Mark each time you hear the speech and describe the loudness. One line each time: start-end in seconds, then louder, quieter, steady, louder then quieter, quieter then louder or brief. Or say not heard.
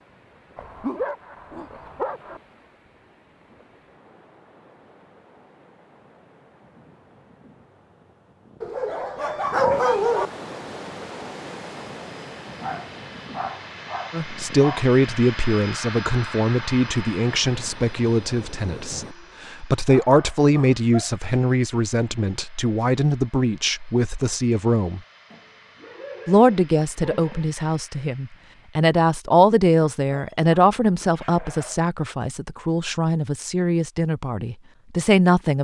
14.1-25.0 steady
26.2-35.5 louder then quieter.